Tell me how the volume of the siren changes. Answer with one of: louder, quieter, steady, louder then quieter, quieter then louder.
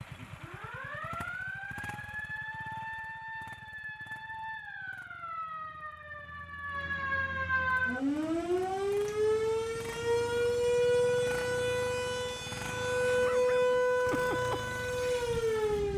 louder.